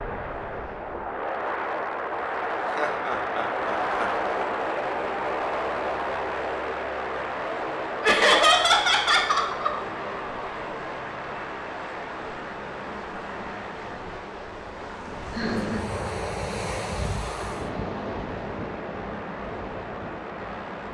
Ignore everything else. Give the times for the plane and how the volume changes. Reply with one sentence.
The plane can be heard from 0.0 to 20.8 s, getting quieter.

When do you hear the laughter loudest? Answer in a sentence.
The volume of the laughter peaks at 8 seconds.